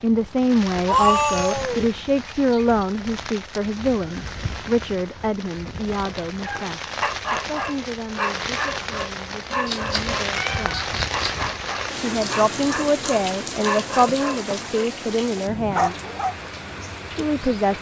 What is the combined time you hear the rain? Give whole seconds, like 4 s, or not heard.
18 s.